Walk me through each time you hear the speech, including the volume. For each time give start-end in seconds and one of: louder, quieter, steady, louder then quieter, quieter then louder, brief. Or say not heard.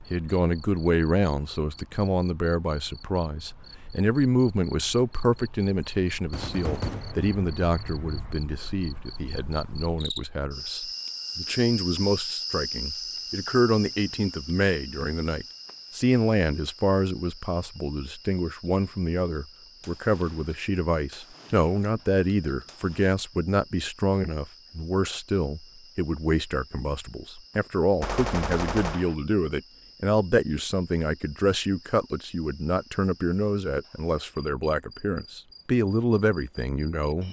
0.1-37.2 steady.